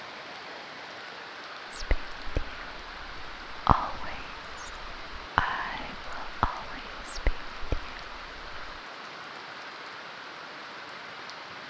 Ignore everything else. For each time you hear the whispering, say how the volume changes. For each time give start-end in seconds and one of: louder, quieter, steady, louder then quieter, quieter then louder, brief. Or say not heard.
1.7-8.8 louder then quieter.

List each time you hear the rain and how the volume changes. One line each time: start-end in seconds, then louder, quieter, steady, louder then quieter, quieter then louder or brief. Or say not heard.
0.0-11.6 steady.